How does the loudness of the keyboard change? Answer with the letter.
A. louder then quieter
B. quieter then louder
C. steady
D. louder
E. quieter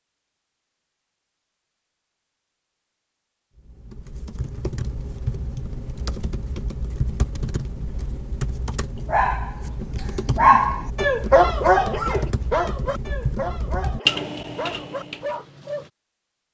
D.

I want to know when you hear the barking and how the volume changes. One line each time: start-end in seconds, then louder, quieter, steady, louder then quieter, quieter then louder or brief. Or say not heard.
8.9-15.9 quieter.